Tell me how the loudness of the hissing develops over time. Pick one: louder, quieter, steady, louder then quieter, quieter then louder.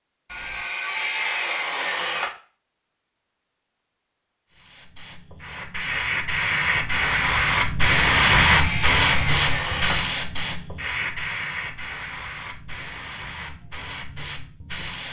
louder then quieter.